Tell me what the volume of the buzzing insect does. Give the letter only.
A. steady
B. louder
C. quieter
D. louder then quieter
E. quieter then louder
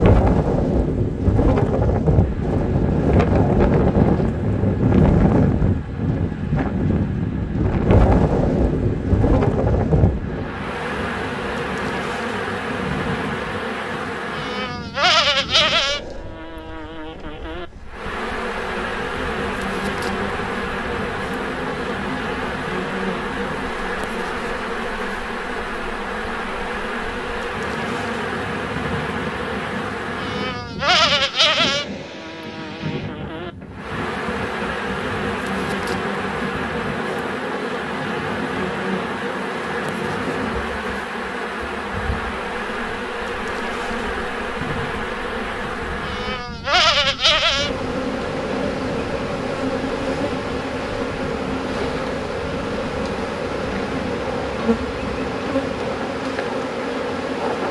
B.